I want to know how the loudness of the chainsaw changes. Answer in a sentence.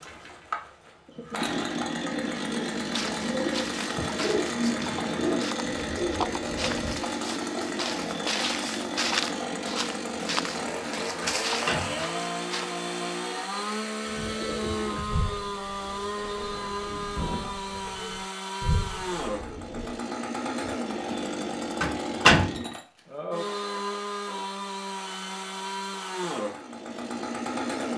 The loudness of the chainsaw stays about the same.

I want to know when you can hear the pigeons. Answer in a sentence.
The pigeons can be heard from 1.1 to 7.0 s and from 14.1 to 19.9 s.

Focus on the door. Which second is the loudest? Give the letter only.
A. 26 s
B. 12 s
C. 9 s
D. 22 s
D.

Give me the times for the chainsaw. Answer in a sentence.
You can hear the chainsaw from 0.0 to 27.9 s.